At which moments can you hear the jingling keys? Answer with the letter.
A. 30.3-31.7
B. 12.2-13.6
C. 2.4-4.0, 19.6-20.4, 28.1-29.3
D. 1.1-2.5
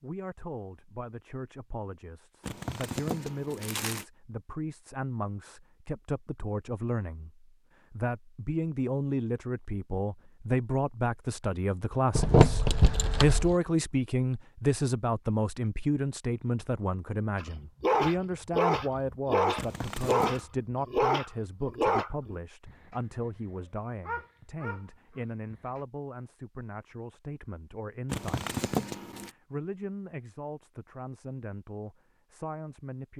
B.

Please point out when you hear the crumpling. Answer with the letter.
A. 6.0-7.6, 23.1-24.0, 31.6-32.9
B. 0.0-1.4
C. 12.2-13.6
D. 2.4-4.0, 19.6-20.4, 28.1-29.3
D.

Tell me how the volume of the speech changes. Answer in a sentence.
The loudness of the speech goes up, then down.